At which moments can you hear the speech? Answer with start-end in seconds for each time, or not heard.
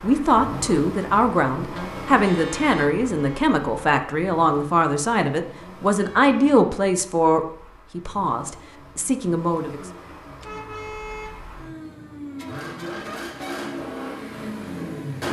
0.0-9.8.